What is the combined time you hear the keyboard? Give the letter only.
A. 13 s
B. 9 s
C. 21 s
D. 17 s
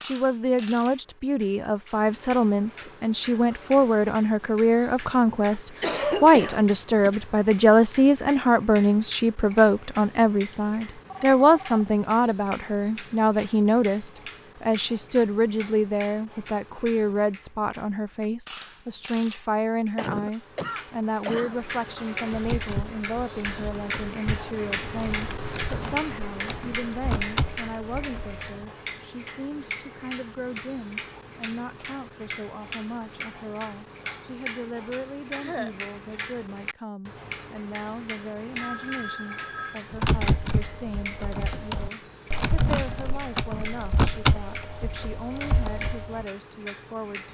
A.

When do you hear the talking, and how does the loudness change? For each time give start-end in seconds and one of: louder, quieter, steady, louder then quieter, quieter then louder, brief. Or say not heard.
0.0-47.2 quieter.